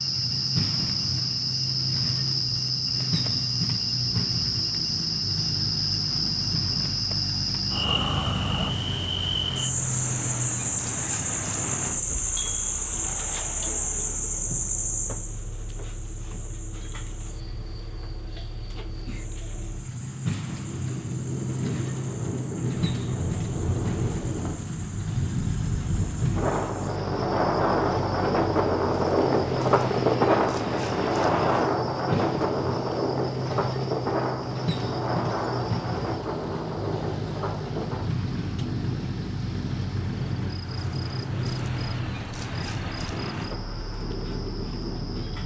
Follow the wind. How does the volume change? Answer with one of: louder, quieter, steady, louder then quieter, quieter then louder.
louder then quieter.